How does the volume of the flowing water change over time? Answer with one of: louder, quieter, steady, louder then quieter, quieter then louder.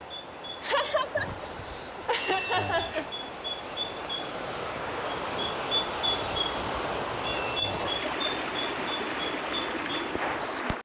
louder.